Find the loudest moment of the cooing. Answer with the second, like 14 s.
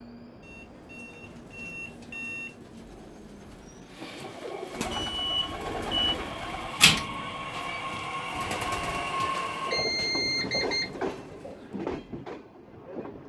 7 s.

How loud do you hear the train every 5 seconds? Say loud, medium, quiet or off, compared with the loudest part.
quiet, loud, loud.